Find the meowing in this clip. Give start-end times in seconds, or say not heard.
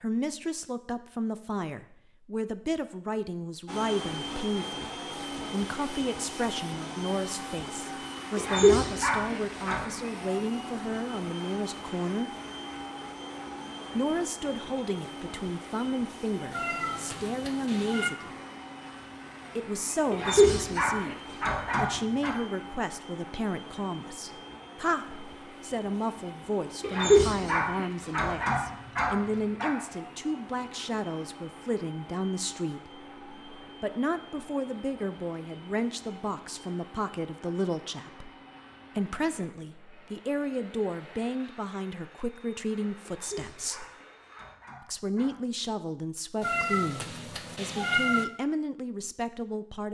16.5-18.1, 46.4-48.2.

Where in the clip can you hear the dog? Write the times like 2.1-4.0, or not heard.
8.3-9.8, 20.1-22.4, 26.8-29.7, 43.0-45.4.